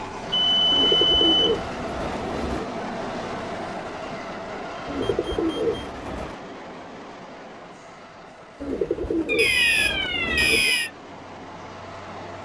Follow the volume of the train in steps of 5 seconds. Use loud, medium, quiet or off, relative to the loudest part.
loud, medium, medium.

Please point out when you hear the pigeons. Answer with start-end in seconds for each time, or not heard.
0.7-2.6, 4.8-6.3, 8.6-10.8.